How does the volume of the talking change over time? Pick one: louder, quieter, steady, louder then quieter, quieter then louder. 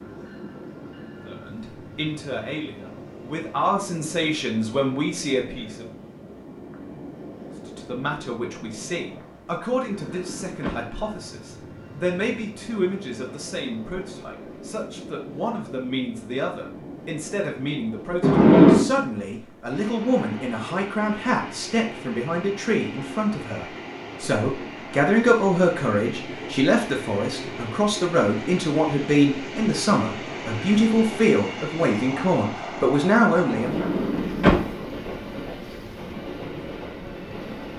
louder.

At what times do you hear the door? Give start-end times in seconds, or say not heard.
9.7-10.8, 18.2-18.9, 33.5-34.6.